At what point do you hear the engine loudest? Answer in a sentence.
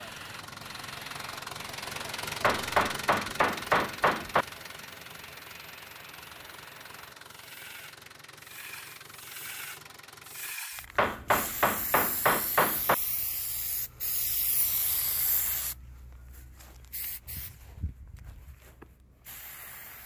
The loudest moment of the engine is at 3 seconds.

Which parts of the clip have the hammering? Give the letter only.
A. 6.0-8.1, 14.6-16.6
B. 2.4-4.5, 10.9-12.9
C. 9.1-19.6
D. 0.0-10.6
B.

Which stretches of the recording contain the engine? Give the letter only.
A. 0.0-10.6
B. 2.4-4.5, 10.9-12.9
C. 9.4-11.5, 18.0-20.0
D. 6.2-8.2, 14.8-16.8
A.